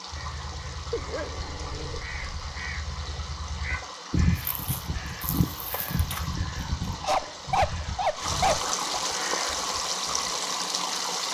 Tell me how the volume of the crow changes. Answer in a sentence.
The volume of the crow goes up, then down.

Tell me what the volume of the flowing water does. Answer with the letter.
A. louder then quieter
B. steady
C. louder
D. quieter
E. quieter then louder
C.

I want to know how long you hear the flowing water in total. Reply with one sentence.
The flowing water can be heard for 11 seconds in total.